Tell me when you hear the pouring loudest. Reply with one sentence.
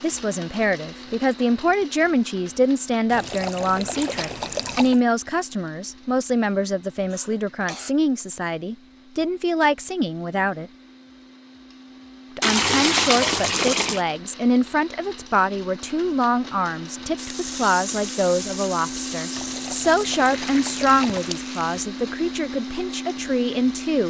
The volume of the pouring peaks at 13 seconds.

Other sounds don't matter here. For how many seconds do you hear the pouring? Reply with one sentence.
The pouring can be heard for 6 seconds in total.